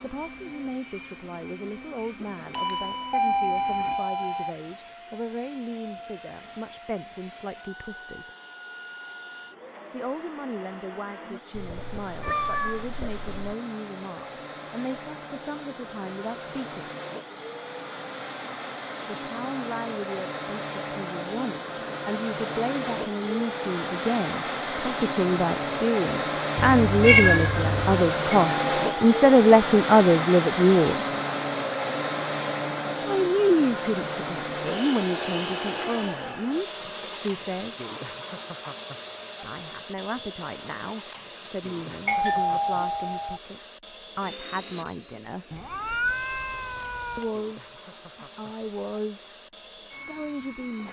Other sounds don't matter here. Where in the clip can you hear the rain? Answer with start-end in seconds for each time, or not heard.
not heard.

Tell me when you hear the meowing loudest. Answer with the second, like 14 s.
27 s.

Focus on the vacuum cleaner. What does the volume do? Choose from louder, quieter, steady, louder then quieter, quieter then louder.
louder then quieter.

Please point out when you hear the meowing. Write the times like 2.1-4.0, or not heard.
11.5-13.6, 26.6-28.1, 45.5-47.4.